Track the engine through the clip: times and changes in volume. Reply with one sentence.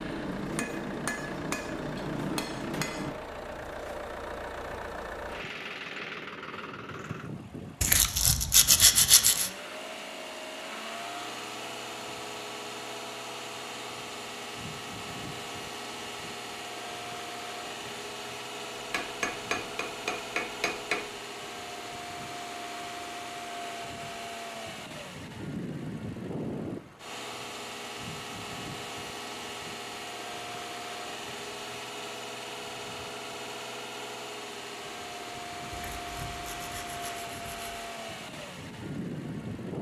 You can hear the engine from 0.0 to 39.7 s, at a steady volume.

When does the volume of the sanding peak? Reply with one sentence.
The volume of the sanding peaks at 9 seconds.